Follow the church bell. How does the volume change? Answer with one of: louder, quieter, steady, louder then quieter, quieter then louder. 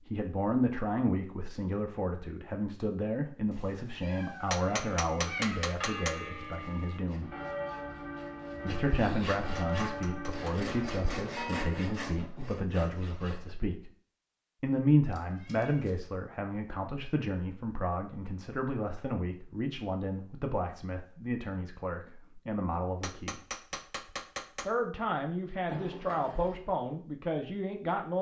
steady.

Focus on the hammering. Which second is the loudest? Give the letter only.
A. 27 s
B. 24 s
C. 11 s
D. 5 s
D.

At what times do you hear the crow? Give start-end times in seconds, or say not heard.
not heard.